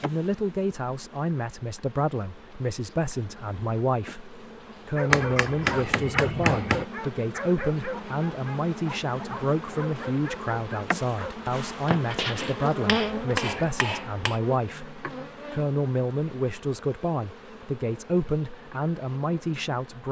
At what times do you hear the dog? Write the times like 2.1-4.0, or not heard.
5.0-11.3.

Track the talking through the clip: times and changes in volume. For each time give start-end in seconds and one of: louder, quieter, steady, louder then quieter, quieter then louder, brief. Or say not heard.
0.0-20.0 steady.